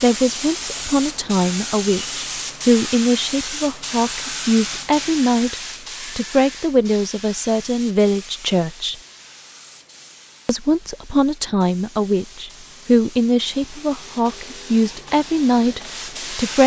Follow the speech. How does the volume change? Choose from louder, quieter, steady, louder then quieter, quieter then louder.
steady.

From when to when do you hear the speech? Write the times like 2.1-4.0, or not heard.
0.0-8.9, 10.4-16.6.